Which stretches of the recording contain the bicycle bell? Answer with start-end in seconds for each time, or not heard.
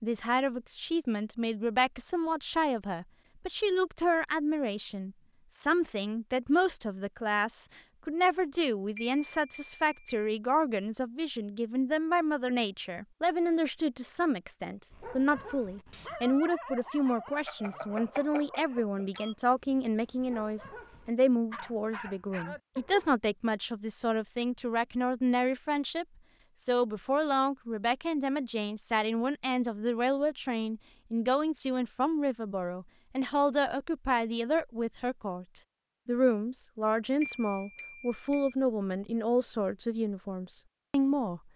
8.9-10.3, 17.4-19.4, 37.2-38.5.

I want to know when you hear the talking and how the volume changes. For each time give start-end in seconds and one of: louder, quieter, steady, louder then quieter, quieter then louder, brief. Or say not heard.
0.0-41.4 steady.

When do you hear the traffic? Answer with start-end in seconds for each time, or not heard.
not heard.